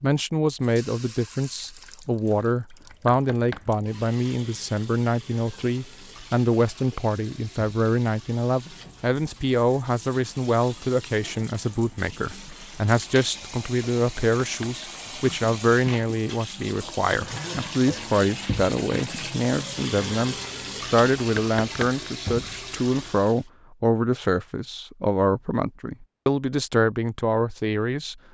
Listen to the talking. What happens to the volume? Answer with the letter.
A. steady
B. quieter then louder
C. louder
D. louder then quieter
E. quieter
A.